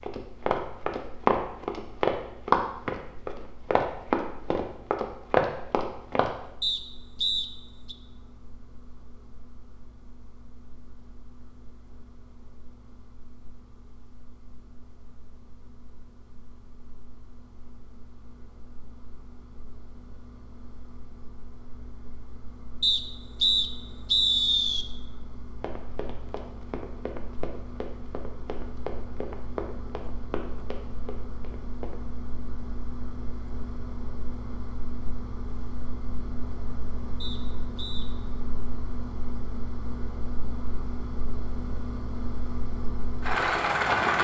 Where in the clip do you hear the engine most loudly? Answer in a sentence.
The loudest moment of the engine is at 44 seconds.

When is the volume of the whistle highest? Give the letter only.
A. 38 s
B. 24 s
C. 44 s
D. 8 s
B.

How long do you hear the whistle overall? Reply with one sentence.
You can hear the whistle for 4 seconds altogether.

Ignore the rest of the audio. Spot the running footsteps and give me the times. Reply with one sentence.
The running footsteps can be heard from 0.0 to 6.3 s and from 25.6 to 32.0 s.